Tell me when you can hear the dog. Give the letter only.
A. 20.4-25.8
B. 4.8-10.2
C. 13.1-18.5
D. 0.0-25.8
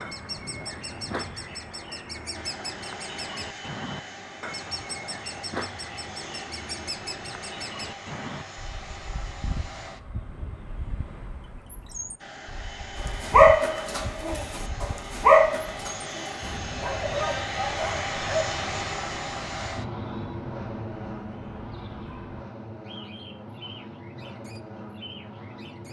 C.